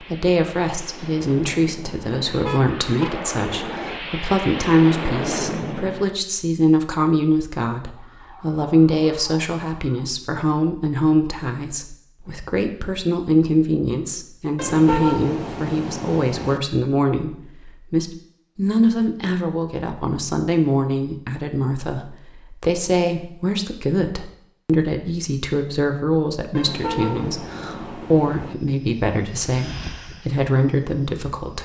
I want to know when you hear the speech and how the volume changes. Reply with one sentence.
The speech can be heard from 0.0 to 31.6 s, at a steady volume.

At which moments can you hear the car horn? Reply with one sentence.
The car horn can be heard from 2.4 to 3.1 s, from 14.6 to 16.6 s and from 26.6 to 28.6 s.